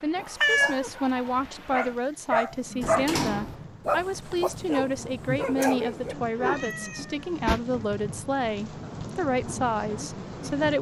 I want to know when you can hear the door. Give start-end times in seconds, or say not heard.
2.8-3.6, 7.0-7.7.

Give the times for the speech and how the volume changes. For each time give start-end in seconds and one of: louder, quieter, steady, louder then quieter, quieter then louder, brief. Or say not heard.
0.0-10.7 steady.